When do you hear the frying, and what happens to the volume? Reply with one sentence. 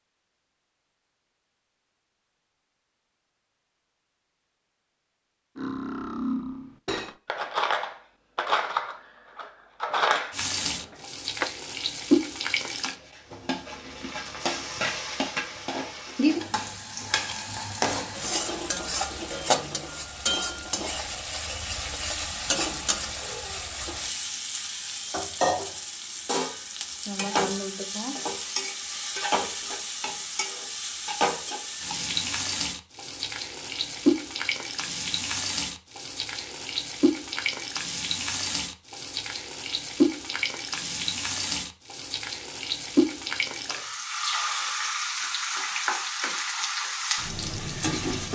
The frying can be heard from 10.3 to 48.2 s, at a steady volume.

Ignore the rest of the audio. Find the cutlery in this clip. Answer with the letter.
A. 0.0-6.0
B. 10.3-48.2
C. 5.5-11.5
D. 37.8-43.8
C.